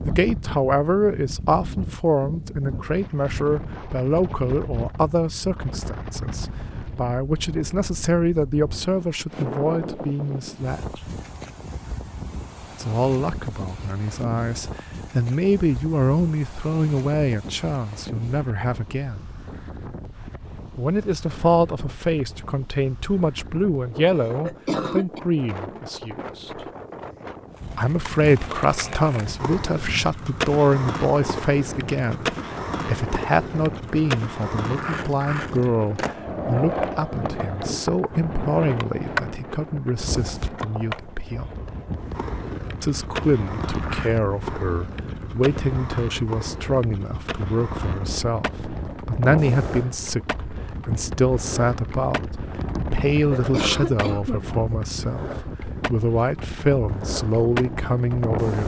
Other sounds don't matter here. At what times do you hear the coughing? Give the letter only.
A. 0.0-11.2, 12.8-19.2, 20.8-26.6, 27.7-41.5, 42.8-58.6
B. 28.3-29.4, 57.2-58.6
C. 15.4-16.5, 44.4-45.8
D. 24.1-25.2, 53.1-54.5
D.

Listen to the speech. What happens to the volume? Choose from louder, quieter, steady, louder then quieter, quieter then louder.
steady.